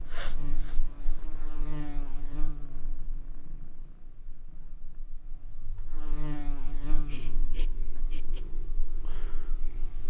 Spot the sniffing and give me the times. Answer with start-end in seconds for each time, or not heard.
0.1-1.1, 7.0-8.5.